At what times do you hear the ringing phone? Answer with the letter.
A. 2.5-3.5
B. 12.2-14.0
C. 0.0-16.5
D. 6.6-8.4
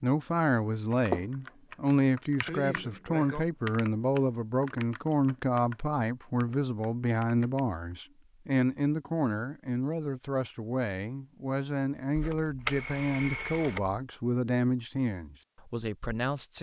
B.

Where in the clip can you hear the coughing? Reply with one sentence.
The coughing can be heard from 2.5 to 3.5 s.